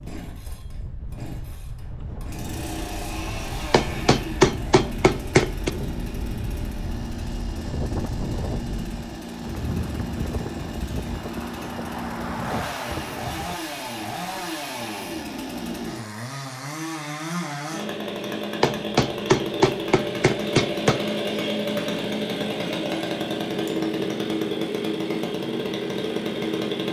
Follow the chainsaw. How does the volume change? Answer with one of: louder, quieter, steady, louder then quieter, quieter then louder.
louder.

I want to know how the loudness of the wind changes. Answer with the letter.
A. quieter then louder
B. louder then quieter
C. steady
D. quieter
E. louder
E.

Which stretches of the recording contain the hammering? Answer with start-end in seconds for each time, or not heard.
3.7-5.7, 18.6-21.0.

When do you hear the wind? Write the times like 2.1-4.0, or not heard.
0.0-13.6.